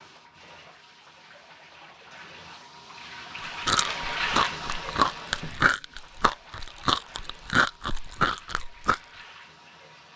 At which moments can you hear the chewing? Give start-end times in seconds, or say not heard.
3.6-9.0.